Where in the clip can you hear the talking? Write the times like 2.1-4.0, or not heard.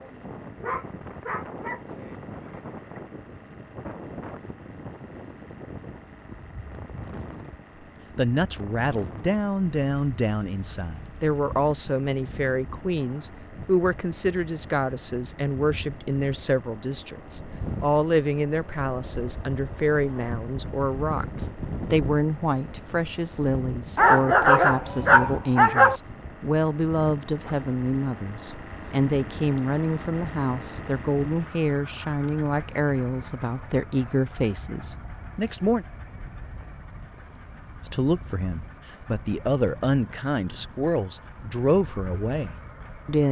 8.2-35.9, 37.9-43.2.